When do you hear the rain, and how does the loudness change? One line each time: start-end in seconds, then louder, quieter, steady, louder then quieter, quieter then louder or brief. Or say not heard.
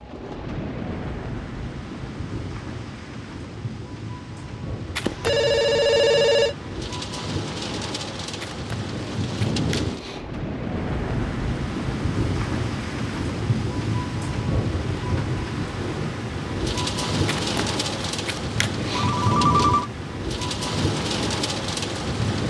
0.0-22.4 louder.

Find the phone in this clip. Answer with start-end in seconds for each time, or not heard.
5.0-6.5, 18.9-19.9.